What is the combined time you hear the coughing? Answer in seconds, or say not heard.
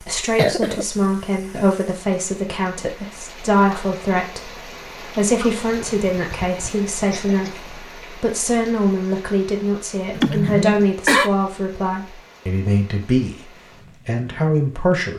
4 s.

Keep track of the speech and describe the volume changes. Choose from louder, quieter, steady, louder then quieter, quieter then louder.
steady.